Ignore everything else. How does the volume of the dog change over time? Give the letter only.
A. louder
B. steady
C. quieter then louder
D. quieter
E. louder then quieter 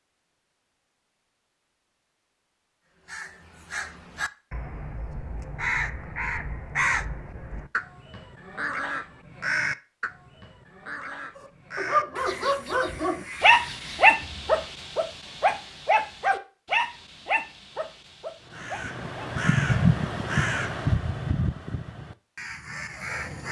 D.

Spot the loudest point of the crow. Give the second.
20 s.